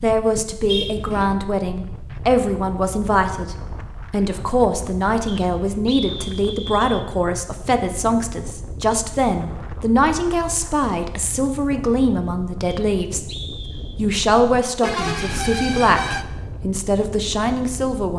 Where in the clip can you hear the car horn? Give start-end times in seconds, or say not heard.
0.7-1.4, 14.8-16.2.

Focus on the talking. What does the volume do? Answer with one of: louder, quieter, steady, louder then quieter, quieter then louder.
steady.